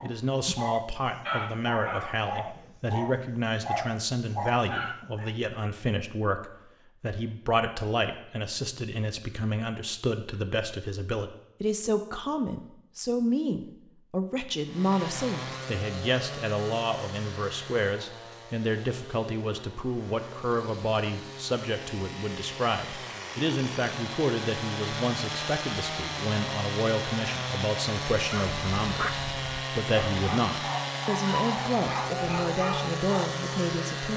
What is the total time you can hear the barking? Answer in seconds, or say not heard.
10 s.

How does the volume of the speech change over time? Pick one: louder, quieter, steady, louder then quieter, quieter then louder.
steady.